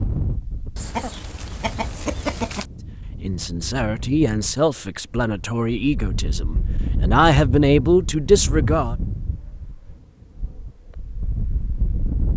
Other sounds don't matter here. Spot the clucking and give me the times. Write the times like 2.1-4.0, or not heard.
0.8-2.7.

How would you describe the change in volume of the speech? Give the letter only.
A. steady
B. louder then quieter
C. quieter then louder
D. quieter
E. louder
E.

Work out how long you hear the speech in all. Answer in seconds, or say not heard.
6 s.